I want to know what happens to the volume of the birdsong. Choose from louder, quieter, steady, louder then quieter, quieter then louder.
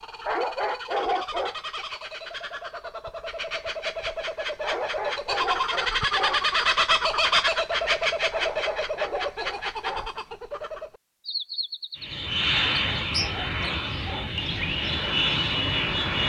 louder then quieter.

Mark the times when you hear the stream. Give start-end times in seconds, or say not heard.
not heard.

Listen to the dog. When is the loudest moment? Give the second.
1 s.